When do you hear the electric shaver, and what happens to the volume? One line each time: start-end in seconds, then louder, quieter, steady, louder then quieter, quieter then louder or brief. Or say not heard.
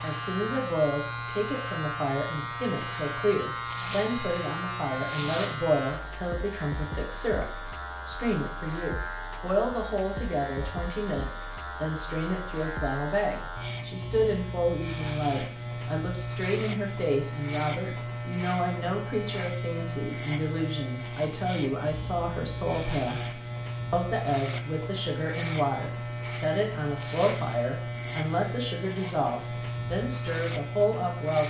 0.0-31.4 steady.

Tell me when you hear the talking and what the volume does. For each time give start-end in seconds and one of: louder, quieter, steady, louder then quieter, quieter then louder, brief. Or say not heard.
0.0-31.4 steady.